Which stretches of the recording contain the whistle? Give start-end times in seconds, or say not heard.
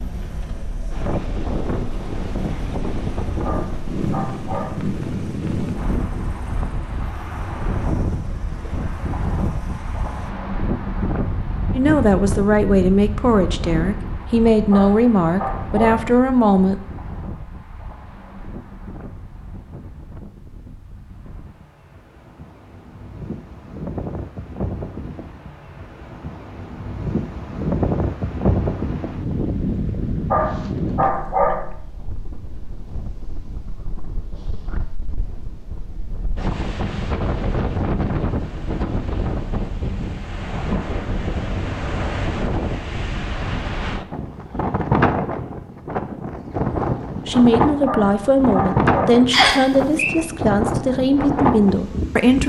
49.3-50.1.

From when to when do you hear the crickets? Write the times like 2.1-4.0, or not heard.
not heard.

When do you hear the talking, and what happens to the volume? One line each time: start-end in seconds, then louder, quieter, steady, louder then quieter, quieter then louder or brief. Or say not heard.
11.7-16.8 steady
47.2-52.4 steady.